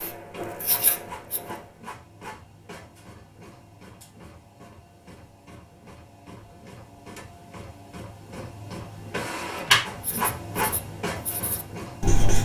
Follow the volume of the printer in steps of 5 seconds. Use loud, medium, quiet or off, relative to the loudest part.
quiet, loud, loud.